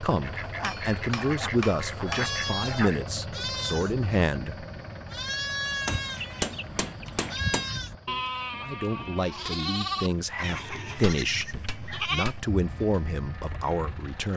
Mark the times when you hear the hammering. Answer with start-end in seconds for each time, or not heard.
0.6-2.4, 5.8-7.7, 10.8-12.5.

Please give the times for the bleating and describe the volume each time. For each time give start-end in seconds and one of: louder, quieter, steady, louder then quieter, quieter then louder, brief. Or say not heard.
2.0-14.2 steady.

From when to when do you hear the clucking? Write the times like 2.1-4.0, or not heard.
0.2-3.0, 6.0-7.9, 10.3-12.1.